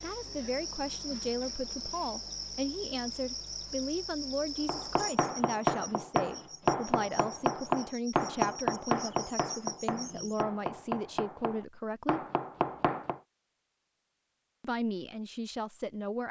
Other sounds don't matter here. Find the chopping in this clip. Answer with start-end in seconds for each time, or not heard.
4.7-13.2.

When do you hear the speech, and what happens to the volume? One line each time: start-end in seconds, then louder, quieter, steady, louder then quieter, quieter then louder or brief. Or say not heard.
0.0-12.2 steady
14.6-16.2 brief.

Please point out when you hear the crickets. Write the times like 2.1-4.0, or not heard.
0.0-10.4.